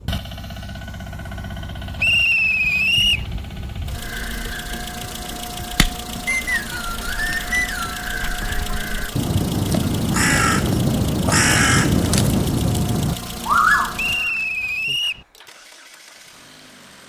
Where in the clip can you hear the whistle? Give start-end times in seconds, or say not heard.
1.9-3.2, 6.2-8.0, 13.9-15.2.